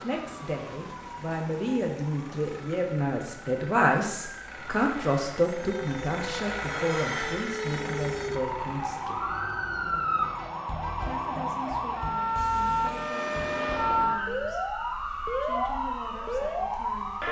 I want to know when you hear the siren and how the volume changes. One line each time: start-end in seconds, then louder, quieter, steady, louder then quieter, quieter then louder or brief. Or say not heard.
0.0-17.2 louder.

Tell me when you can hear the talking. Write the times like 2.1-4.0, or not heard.
0.0-9.3, 11.1-17.2.